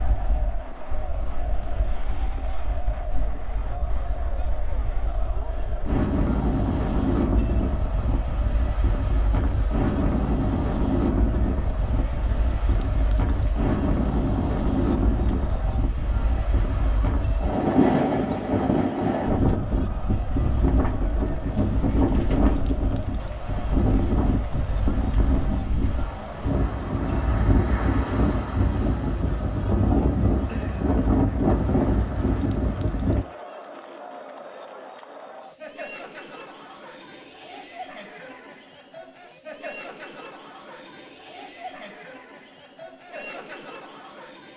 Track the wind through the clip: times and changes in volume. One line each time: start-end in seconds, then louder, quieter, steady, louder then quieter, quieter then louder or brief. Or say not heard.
0.0-33.2 louder.